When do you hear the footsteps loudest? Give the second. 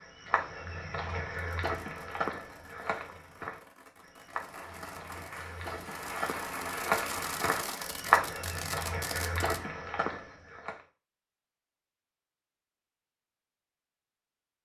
8 s.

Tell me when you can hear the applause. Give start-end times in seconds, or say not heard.
4.3-8.0.